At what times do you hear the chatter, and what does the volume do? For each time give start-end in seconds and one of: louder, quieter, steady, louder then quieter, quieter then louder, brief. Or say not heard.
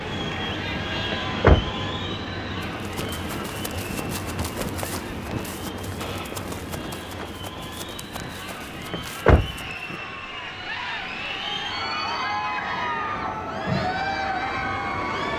0.0-15.3 quieter then louder.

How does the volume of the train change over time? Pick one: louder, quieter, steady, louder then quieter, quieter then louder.
quieter then louder.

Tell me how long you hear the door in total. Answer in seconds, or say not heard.
2 s.